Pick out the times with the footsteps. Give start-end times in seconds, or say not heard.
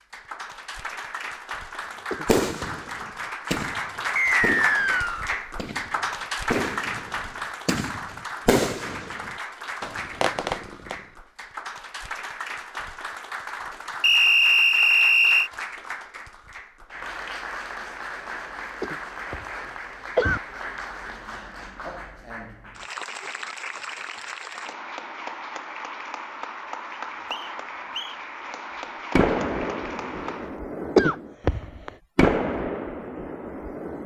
not heard.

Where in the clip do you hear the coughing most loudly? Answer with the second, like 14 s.
31 s.